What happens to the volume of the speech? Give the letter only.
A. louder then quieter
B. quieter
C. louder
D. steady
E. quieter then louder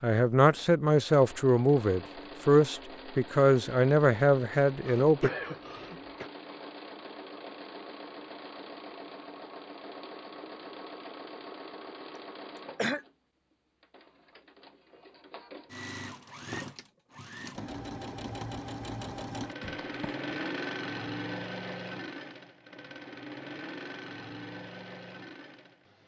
D.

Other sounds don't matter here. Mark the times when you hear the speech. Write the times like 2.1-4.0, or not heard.
0.0-5.3.